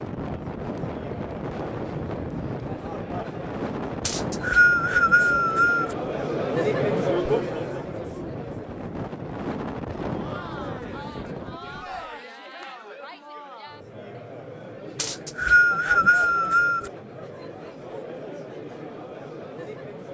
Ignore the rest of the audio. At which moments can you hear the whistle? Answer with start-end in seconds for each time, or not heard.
4.0-6.0, 14.9-16.9.